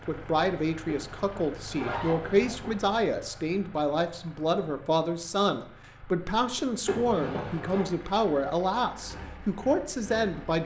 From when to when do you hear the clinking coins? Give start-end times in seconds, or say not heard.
not heard.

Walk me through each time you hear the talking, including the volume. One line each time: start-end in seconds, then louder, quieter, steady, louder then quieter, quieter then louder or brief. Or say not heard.
0.0-10.6 steady.